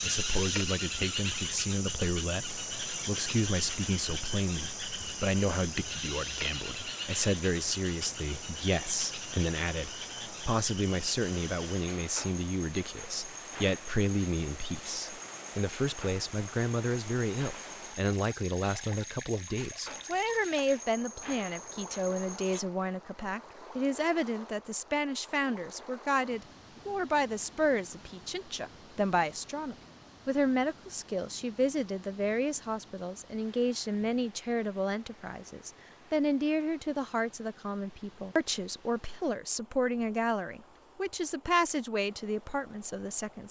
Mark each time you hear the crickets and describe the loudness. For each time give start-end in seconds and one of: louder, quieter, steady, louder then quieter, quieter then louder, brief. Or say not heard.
0.0-22.6 quieter.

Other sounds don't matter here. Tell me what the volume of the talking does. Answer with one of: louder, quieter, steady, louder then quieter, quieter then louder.
steady.